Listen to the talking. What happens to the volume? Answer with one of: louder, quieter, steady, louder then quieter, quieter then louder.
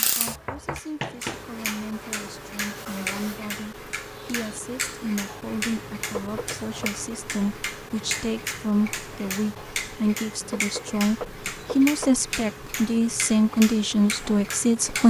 louder.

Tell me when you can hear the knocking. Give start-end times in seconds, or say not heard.
0.2-1.4, 6.1-6.8, 10.5-12.2.